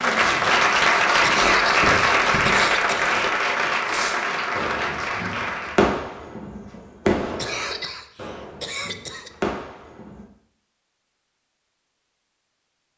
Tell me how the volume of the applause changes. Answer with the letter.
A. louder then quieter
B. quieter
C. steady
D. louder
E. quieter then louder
B.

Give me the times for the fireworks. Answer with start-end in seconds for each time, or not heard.
0.3-10.2.